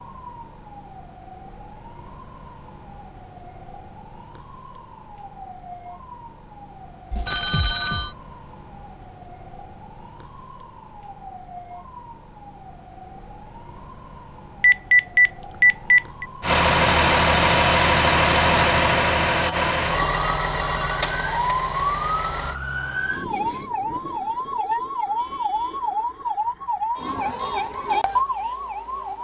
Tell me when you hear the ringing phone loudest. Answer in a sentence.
The loudest moment of the ringing phone is at 15 seconds.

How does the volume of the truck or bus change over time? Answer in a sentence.
The loudness of the truck or bus goes down.